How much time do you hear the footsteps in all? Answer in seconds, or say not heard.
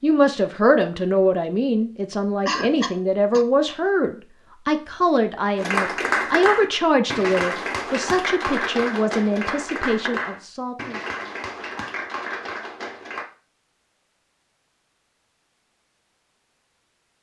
not heard.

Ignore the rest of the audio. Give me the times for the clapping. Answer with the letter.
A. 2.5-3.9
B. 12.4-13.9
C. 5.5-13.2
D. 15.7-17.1
C.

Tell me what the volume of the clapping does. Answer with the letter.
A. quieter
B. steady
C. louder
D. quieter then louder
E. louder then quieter
A.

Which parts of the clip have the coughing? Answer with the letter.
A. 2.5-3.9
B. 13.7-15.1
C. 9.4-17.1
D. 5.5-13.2
A.